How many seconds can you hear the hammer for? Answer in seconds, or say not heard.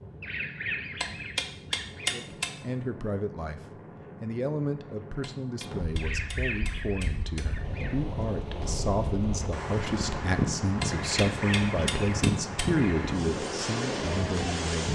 6 s.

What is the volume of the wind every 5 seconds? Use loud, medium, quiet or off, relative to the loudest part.
quiet, medium, loud.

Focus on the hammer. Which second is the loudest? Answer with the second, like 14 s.
2 s.